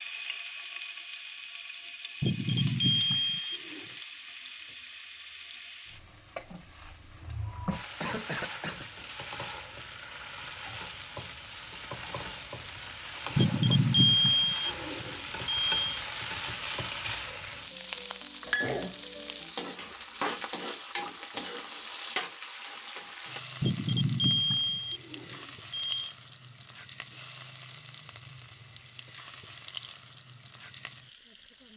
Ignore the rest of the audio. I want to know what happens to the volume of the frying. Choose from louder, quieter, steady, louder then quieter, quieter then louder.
louder then quieter.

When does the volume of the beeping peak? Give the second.
14 s.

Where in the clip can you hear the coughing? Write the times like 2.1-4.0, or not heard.
8.0-8.9, 18.4-18.9.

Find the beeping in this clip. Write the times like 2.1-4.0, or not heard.
2.2-3.9, 13.3-16.0, 23.6-26.1.